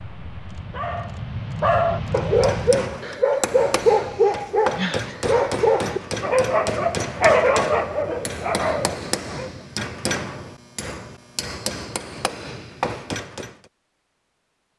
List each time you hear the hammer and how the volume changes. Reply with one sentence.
The hammer can be heard from 2.2 to 13.6 s, at a steady volume.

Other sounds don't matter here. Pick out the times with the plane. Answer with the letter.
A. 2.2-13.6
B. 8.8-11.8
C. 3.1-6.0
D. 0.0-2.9
D.